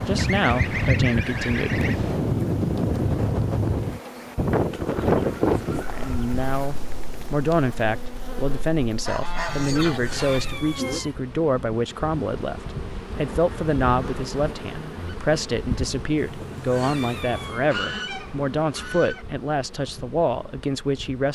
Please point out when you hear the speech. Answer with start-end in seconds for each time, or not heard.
0.1-2.5, 5.8-21.3.